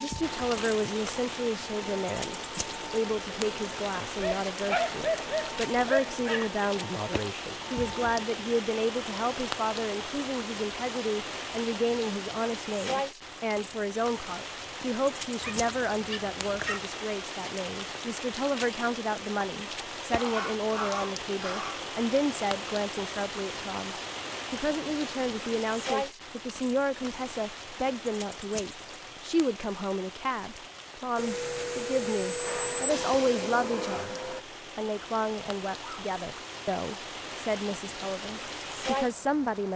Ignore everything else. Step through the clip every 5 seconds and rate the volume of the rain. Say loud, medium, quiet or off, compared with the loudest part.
loud, loud, loud, loud, loud, loud, medium, loud.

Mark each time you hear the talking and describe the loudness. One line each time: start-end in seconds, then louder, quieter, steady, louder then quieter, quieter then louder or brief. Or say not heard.
0.0-39.7 steady.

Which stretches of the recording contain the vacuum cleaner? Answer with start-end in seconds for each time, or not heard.
0.0-8.2, 31.1-34.5.